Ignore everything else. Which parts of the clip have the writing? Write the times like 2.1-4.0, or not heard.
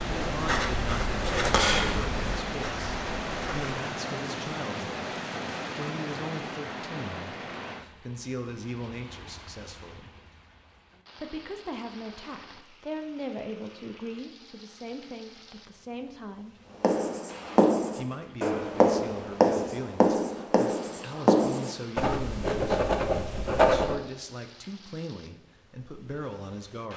0.1-3.6, 16.8-23.9.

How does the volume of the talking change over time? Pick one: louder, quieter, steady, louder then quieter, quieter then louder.
steady.